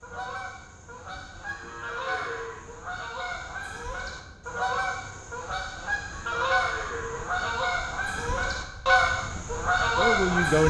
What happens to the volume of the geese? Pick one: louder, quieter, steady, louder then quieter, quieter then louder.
louder.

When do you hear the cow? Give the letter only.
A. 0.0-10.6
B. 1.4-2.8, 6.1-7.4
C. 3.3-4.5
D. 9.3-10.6
B.